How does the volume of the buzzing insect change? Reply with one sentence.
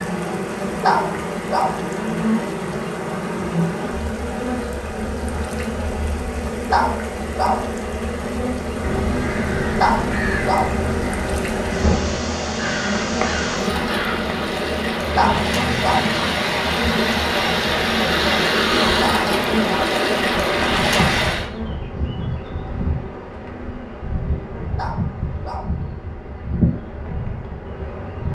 The loudness of the buzzing insect stays about the same.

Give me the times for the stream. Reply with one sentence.
You can hear the stream from 0.0 to 21.5 s.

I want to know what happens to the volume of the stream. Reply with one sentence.
The volume of the stream goes up.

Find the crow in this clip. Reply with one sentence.
The crow can be heard from 8.8 to 14.3 s.